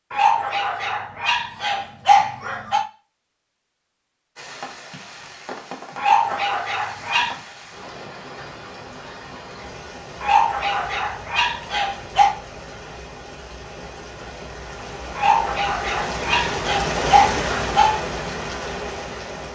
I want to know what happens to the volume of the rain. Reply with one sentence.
The loudness of the rain goes up.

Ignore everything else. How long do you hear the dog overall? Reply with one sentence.
The dog can be heard for 9 seconds in total.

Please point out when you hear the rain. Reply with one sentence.
You can hear the rain from 4.3 to 19.5 s.